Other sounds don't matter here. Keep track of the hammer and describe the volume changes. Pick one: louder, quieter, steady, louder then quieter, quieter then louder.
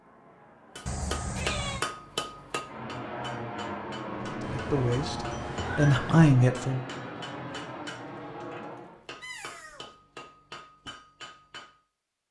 quieter.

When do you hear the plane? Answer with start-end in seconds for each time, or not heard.
0.0-9.1.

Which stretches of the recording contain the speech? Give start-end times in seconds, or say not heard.
4.1-6.8.